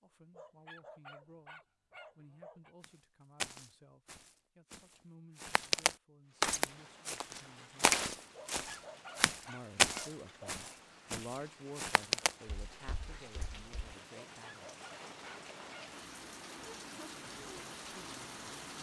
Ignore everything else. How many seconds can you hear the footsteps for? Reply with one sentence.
The footsteps can be heard for 11 seconds in total.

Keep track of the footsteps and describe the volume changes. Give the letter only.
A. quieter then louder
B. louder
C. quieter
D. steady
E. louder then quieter
E.